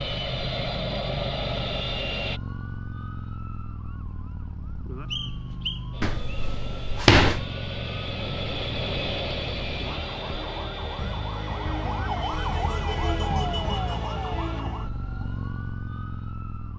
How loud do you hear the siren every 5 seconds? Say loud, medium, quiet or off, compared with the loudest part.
medium, medium, loud, medium.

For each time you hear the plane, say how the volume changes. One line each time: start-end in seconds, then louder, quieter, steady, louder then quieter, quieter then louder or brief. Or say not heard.
0.0-2.4 brief
5.9-14.7 louder then quieter.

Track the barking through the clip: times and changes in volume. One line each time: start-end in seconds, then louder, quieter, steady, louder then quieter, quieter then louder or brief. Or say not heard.
not heard.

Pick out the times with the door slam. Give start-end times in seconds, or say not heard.
6.0-7.5.